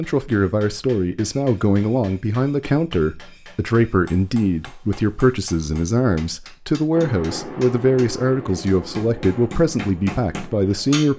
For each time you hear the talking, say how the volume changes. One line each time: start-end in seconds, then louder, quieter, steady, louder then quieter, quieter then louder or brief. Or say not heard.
0.0-11.1 steady.